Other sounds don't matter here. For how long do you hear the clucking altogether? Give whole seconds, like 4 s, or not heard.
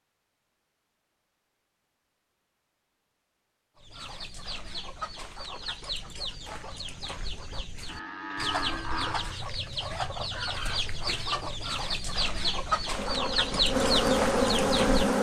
11 s.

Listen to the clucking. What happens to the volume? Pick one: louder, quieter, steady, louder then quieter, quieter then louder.
louder.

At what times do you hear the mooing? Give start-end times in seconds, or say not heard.
7.8-9.4.